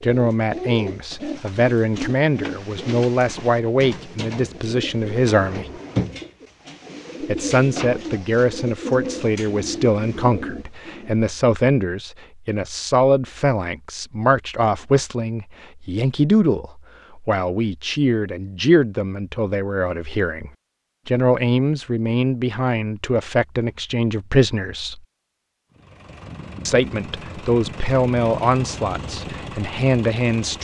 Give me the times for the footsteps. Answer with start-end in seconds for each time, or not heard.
not heard.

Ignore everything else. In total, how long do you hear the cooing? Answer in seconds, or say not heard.
11 s.